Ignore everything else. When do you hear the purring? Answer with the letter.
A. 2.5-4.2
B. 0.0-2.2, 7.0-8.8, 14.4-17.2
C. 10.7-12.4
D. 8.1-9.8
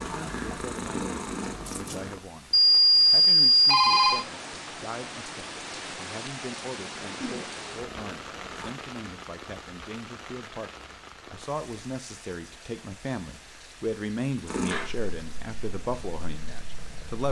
B.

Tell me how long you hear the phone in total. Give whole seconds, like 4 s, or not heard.
2 s.